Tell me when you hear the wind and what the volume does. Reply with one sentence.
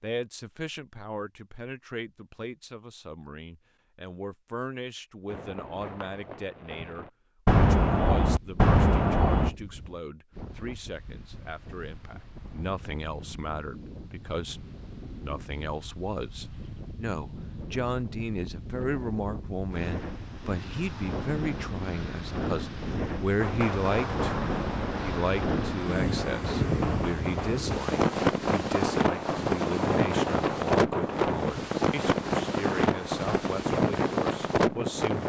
The wind can be heard from 8.2 to 35.2 s, getting louder.